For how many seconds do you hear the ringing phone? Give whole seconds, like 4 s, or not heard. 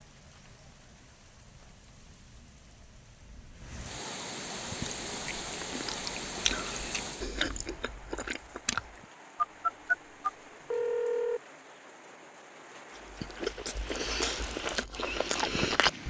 2 s.